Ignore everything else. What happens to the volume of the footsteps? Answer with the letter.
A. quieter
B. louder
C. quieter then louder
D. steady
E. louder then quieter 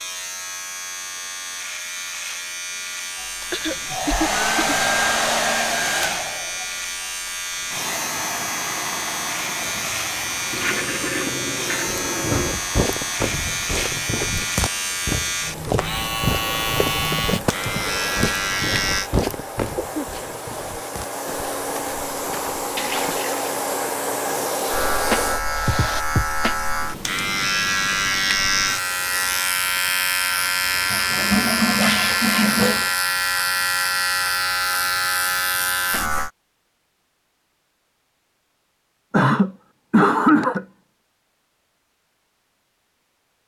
A.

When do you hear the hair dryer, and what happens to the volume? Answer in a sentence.
The hair dryer can be heard from 3.1 to 26.1 s, getting quieter then louder.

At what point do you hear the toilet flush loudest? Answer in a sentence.
The loudest moment of the toilet flush is at 32 seconds.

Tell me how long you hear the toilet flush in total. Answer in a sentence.
The toilet flush can be heard for 5 seconds in total.